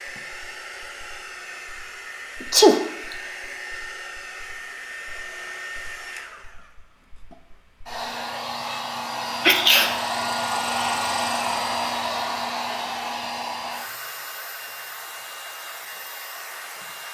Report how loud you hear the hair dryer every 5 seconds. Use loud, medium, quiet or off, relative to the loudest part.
medium, medium, loud, medium.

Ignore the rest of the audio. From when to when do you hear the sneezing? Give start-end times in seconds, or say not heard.
2.4-3.1, 9.4-9.9.